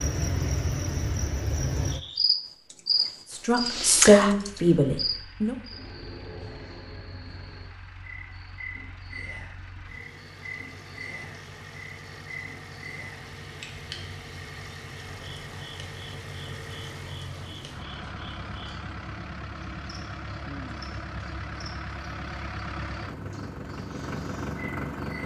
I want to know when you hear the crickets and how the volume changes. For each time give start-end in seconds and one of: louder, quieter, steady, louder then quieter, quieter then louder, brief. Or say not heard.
0.0-25.2 quieter.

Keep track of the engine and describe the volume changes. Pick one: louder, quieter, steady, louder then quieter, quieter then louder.
louder.